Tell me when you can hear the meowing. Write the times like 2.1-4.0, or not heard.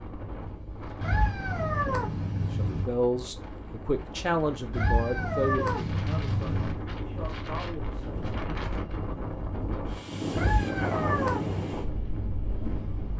1.0-2.9, 4.7-6.8, 10.3-11.7.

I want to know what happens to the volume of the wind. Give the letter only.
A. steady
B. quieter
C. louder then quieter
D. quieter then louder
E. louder
E.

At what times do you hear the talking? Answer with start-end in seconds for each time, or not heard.
2.5-8.2.